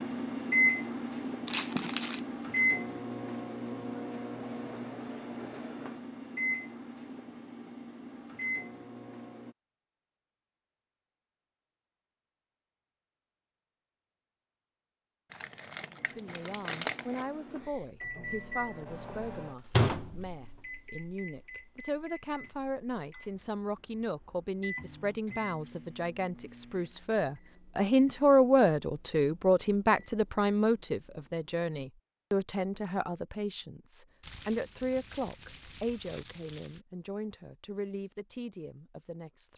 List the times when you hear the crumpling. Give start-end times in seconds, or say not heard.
1.4-2.2, 15.3-17.2, 34.2-36.8.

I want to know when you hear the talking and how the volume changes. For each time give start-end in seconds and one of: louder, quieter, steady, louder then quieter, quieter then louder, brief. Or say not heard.
16.1-39.5 louder then quieter.